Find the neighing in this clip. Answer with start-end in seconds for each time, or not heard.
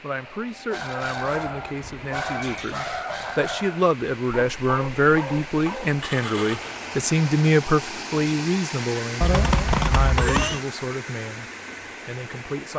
1.4-2.7, 6.0-6.8, 9.2-10.6.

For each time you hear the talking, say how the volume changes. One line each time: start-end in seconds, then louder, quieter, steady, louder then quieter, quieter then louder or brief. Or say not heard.
0.0-11.4 louder then quieter
12.1-12.7 brief.